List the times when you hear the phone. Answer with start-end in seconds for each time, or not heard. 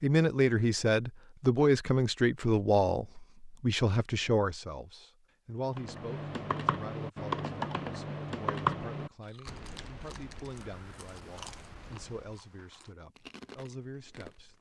not heard.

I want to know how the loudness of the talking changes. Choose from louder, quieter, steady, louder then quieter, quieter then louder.
quieter.